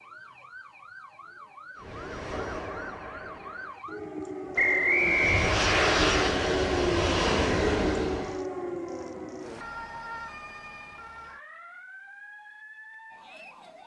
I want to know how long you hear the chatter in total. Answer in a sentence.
The chatter can't be heard in this clip.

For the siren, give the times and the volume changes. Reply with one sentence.
You can hear the siren from 0.0 to 13.8 s, getting louder then quieter.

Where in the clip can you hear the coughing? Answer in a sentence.
The coughing can't be heard in this clip.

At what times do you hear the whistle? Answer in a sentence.
The whistle can be heard from 4.5 to 5.5 s.